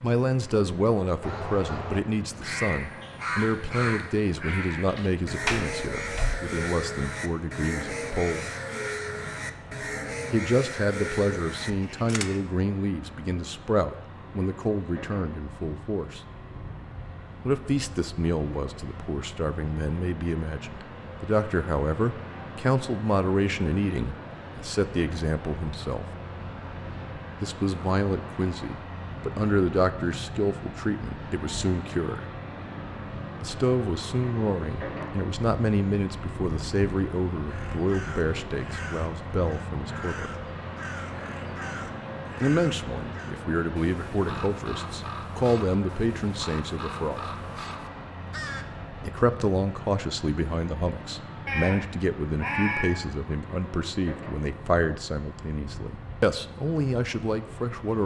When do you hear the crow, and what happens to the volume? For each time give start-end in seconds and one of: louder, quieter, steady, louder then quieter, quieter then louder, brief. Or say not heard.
1.2-12.4 steady
37.5-48.6 steady.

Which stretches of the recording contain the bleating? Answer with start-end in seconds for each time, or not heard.
51.5-53.0.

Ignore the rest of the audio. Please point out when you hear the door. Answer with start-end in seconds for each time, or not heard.
5.5-6.4.